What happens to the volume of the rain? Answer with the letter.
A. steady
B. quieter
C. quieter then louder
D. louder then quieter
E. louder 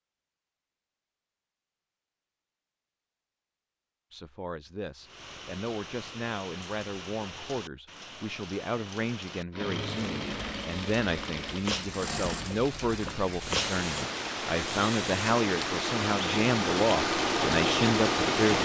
E.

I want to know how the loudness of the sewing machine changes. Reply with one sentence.
The volume of the sewing machine goes up.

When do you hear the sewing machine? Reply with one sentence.
You can hear the sewing machine from 9.5 to 18.5 s.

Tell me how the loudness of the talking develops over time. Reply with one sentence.
The loudness of the talking goes up.